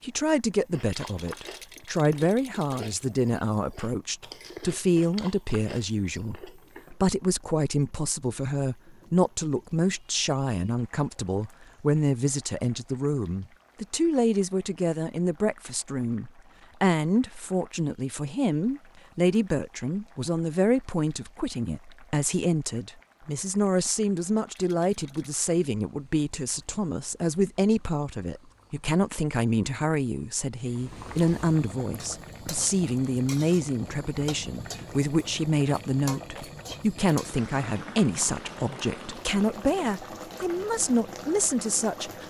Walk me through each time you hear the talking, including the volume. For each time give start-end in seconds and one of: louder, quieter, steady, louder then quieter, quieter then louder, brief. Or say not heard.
0.0-42.2 steady.